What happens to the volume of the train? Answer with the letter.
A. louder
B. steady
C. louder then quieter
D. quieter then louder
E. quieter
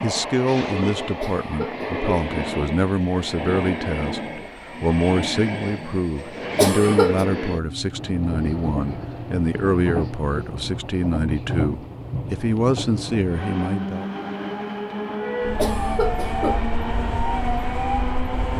B.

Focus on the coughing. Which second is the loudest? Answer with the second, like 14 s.
7 s.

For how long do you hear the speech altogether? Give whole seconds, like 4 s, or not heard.
14 s.